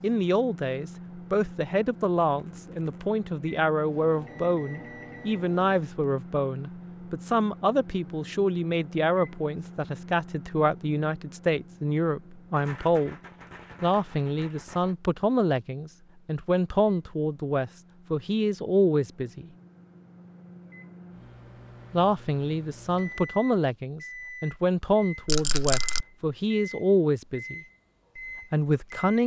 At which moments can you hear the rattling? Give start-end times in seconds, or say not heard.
2.2-3.1, 12.5-14.9, 25.2-26.1.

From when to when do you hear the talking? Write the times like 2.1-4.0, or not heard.
0.0-13.2, 13.8-19.5, 21.9-27.6, 28.5-29.2.